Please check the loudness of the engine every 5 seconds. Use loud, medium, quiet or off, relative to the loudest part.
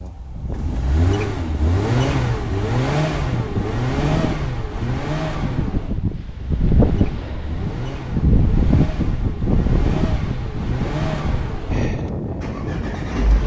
loud, medium, medium.